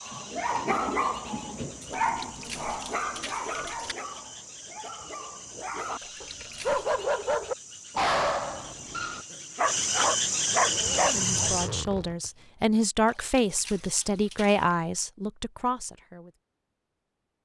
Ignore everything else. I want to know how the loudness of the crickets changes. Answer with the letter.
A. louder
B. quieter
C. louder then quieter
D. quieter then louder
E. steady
A.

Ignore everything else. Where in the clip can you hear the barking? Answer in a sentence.
You can hear the barking from 0.0 to 11.5 s.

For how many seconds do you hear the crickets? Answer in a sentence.
The crickets can be heard for 12 seconds in total.